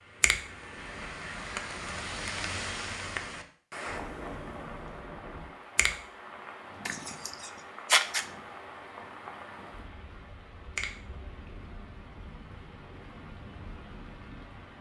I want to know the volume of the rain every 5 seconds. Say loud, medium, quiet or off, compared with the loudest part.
loud, medium, medium.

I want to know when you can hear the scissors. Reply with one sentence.
The scissors can be heard from 6.8 to 8.2 s.